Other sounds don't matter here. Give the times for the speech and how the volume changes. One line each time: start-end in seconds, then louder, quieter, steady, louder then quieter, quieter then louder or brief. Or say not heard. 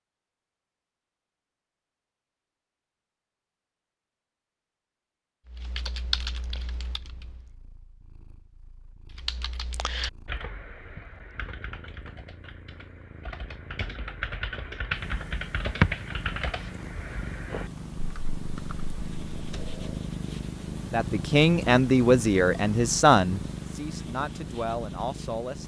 20.9-25.6 quieter.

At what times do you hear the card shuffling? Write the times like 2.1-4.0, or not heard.
19.5-20.1.